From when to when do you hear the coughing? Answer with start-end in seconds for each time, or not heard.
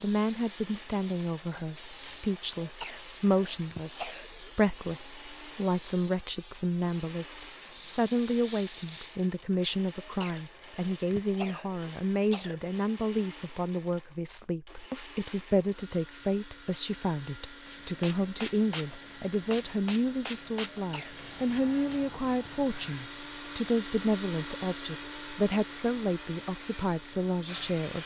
2.6-4.5, 10.0-12.6, 20.7-21.2.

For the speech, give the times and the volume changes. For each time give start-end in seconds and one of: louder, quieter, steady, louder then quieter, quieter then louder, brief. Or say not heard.
0.0-28.0 steady.